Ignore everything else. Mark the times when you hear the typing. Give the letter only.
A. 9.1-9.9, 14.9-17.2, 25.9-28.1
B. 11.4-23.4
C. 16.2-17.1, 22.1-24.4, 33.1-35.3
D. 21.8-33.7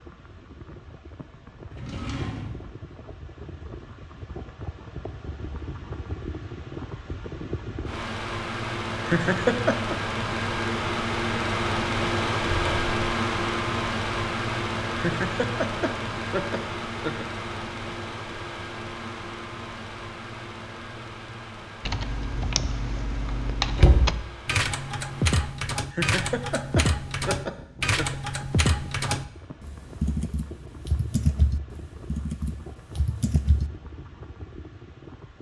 D.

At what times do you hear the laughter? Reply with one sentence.
You can hear the laughter from 9.1 to 9.9 s, from 14.9 to 17.2 s and from 25.9 to 28.1 s.